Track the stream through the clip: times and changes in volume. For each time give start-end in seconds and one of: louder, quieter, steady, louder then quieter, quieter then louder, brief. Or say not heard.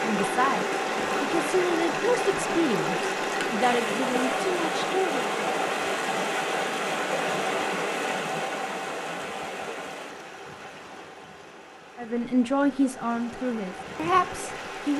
0.0-14.9 quieter.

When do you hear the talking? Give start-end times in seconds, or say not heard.
0.0-5.3, 12.0-14.9.